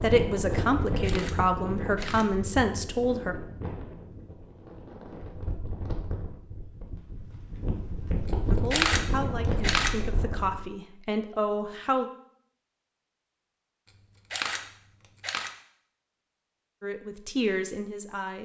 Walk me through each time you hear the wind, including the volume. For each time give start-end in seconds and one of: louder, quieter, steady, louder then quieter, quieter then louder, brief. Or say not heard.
0.0-10.7 quieter then louder.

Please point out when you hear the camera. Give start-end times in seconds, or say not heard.
1.0-2.3, 8.7-9.9, 14.3-15.5.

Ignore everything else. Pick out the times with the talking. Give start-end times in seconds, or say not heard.
0.0-3.4, 8.5-12.1, 16.8-18.4.